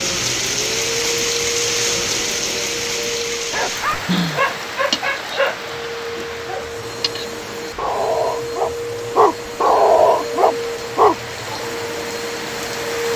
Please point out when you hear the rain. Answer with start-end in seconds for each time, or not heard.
0.0-13.1.